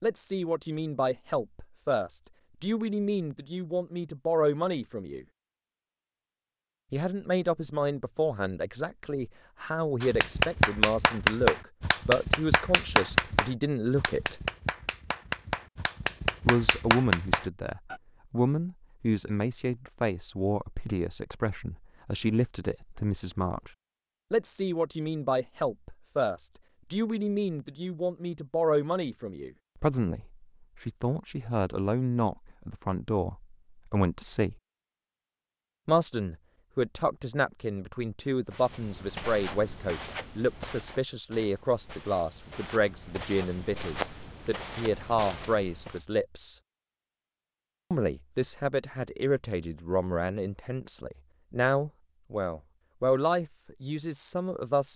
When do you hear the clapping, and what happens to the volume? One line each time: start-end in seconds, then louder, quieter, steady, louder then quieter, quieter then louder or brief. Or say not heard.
10.0-17.9 quieter then louder.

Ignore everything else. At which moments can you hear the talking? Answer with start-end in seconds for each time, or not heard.
0.0-5.2, 6.9-14.4, 16.4-23.7, 24.3-34.5, 35.9-46.6, 47.9-54.9.